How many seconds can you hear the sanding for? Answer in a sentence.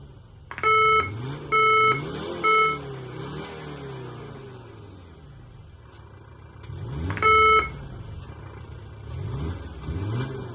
You can't hear the sanding here.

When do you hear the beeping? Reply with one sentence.
The beeping can be heard from 0.5 to 2.8 s and from 7.1 to 7.7 s.